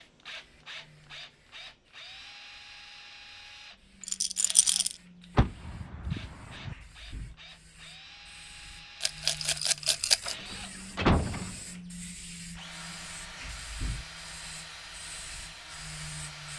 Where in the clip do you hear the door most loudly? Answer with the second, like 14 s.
11 s.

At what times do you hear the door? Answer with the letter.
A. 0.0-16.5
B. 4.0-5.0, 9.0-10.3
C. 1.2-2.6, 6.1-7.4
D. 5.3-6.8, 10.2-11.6
D.